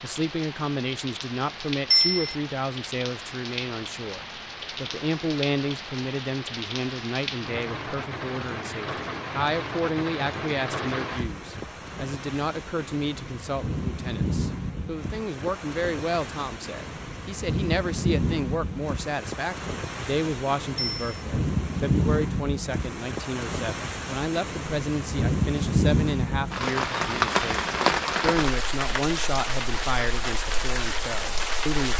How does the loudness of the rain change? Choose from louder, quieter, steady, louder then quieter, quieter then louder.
louder.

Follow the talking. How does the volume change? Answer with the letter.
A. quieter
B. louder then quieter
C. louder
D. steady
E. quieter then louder
D.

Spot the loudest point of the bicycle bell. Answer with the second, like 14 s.
2 s.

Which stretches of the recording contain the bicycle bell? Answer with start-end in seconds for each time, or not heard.
1.9-2.4, 20.8-21.2.